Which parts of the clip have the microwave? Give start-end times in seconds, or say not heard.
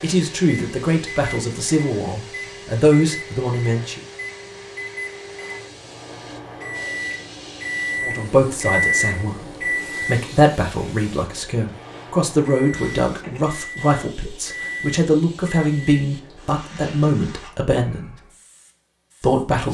0.0-16.6.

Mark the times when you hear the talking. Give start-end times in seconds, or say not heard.
0.0-4.0, 8.0-18.1, 19.2-19.6.